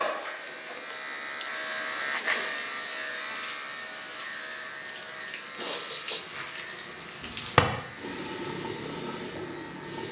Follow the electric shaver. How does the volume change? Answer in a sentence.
The volume of the electric shaver goes down.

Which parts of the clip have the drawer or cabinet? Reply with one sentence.
You can hear the drawer or cabinet from 7.2 to 7.7 s.